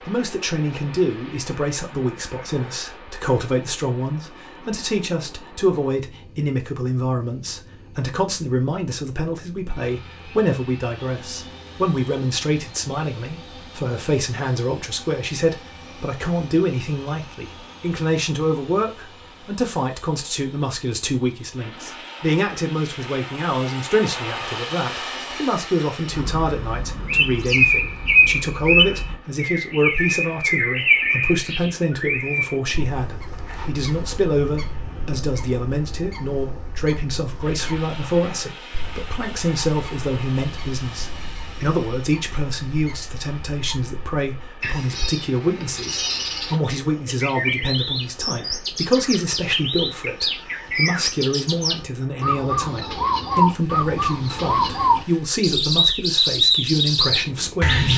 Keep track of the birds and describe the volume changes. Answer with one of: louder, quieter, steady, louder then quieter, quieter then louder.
quieter then louder.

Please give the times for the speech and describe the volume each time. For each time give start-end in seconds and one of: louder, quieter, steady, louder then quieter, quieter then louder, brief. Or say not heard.
0.0-57.9 steady.